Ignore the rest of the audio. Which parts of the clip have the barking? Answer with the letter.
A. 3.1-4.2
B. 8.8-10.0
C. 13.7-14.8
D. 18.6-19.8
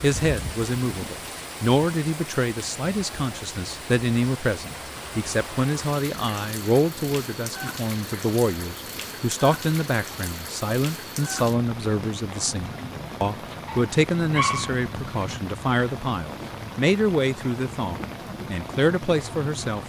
C.